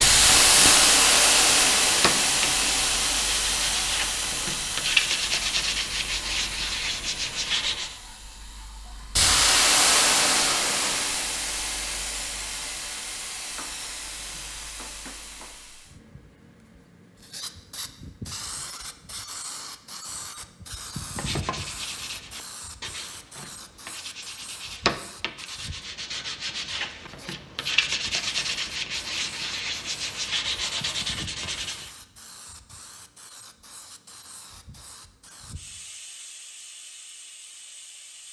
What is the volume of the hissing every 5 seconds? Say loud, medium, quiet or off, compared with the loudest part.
loud, medium, medium, quiet, quiet, quiet, quiet, quiet.